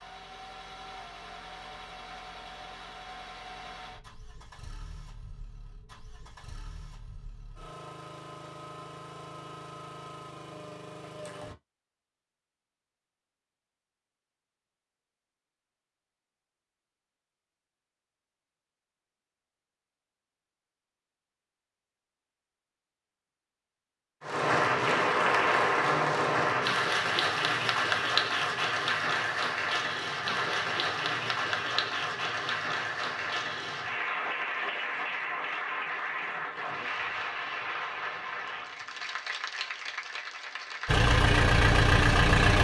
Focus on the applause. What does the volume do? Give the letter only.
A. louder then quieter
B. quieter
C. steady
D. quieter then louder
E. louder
B.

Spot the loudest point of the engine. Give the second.
42 s.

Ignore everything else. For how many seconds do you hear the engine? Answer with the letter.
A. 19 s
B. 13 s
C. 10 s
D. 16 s
B.